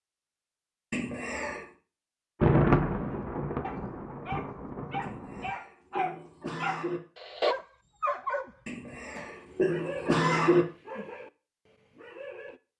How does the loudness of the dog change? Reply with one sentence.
The volume of the dog goes up, then down.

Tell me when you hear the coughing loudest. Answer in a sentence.
The volume of the coughing peaks at 10 seconds.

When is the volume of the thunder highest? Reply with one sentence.
The loudest moment of the thunder is at 3 seconds.